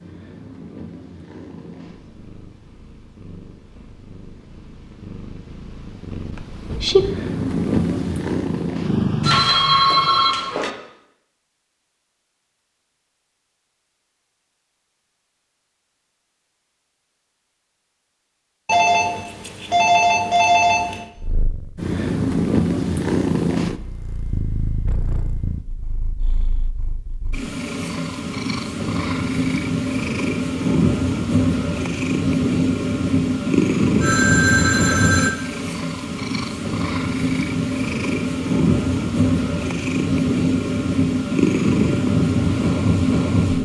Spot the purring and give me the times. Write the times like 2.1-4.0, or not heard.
0.0-10.2, 21.1-43.5.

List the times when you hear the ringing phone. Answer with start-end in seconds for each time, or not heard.
9.2-10.7, 18.6-21.1, 34.0-35.3.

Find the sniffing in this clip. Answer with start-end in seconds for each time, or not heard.
not heard.